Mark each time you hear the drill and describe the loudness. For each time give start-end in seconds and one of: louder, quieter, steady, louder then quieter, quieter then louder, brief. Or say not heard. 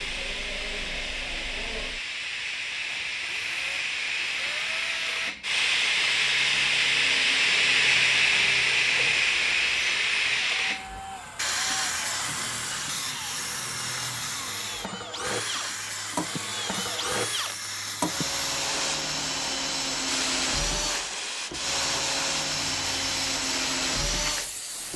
0.0-24.9 louder.